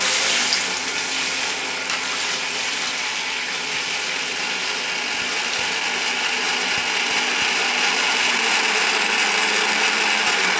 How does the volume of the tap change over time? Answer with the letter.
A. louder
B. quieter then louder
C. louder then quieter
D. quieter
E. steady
D.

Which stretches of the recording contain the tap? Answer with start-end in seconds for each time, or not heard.
0.0-6.5.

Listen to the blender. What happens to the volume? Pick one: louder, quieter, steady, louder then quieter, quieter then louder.
louder.